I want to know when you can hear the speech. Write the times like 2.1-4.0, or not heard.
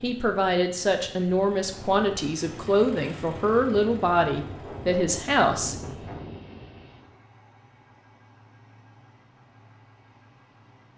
0.0-5.8.